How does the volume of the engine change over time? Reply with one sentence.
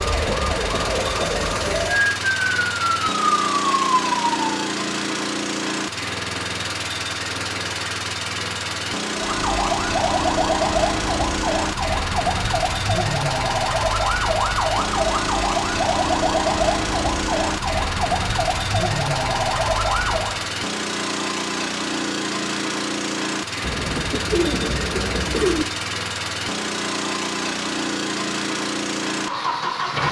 The volume of the engine stays about the same.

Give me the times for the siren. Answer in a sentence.
You can hear the siren from 0.0 to 4.5 s and from 9.2 to 20.4 s.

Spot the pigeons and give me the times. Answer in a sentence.
You can hear the pigeons from 23.6 to 25.6 s.